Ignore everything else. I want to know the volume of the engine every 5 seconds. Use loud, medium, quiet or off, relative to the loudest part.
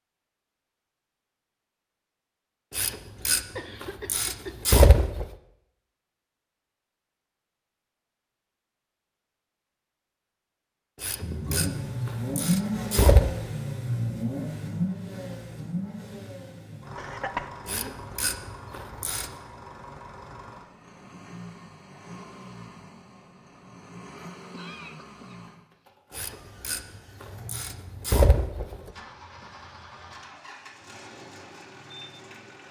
off, off, loud, medium, quiet, quiet, quiet.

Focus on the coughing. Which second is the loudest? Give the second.
17 s.